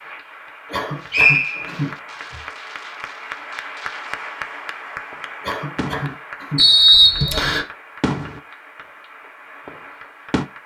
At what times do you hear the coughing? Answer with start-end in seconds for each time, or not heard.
0.7-2.5, 5.4-7.2.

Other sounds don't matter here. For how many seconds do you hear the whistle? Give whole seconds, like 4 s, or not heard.
2 s.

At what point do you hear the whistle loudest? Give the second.
7 s.